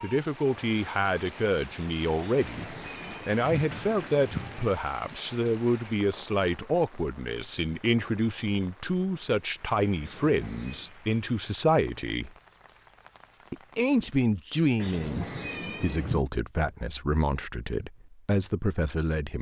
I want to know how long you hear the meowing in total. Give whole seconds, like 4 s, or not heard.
5 s.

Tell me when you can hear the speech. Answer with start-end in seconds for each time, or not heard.
0.0-12.3, 13.5-19.3.